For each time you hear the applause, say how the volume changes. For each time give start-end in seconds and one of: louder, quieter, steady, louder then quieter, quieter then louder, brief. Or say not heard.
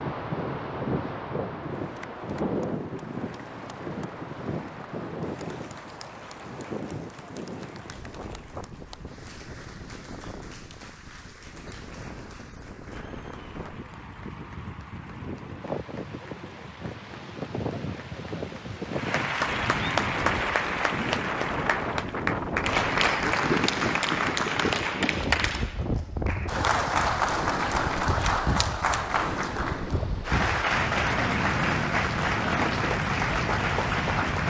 1.8-34.4 louder.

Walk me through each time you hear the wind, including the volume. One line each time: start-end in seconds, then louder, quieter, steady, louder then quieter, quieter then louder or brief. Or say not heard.
0.0-34.4 quieter then louder.